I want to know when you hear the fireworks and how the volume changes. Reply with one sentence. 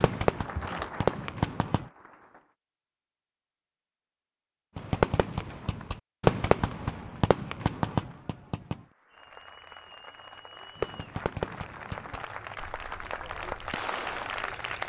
The fireworks can be heard briefly from 0.0 to 1.9 s; from 4.8 to 8.8 s, getting louder then quieter; and from 10.8 to 14.8 s, getting quieter then louder.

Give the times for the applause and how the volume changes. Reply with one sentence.
You can hear the applause briefly from 0.1 to 2.5 s; and from 8.8 to 14.8 s, getting louder.